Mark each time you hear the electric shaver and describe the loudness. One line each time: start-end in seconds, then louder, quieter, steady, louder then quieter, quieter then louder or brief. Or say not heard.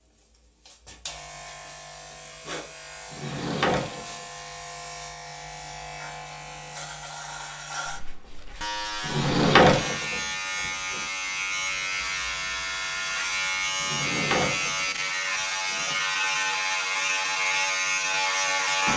0.0-18.9 louder.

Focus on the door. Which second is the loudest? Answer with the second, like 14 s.
10 s.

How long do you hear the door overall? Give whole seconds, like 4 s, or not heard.
5 s.